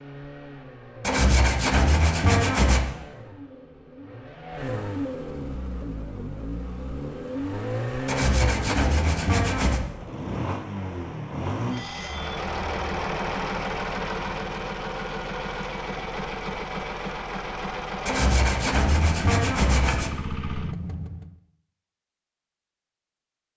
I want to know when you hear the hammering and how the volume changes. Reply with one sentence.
You can't hear the hammering here.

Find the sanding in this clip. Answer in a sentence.
The sanding can be heard from 1.0 to 2.9 s, from 8.1 to 9.8 s and from 18.1 to 20.1 s.